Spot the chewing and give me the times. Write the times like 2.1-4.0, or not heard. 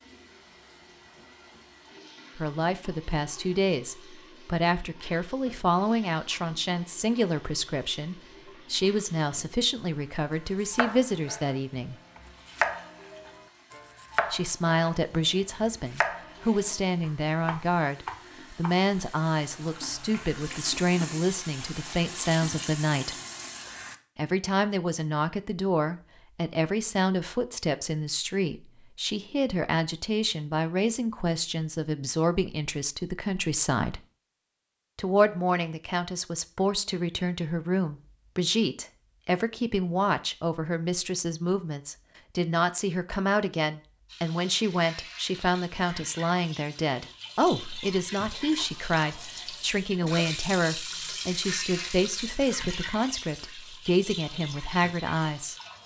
not heard.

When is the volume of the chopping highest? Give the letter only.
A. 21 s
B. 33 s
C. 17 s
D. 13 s
D.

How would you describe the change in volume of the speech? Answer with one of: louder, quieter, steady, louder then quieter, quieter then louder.
steady.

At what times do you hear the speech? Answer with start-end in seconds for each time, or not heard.
2.4-11.9, 14.3-23.1, 24.1-34.0, 35.0-55.5.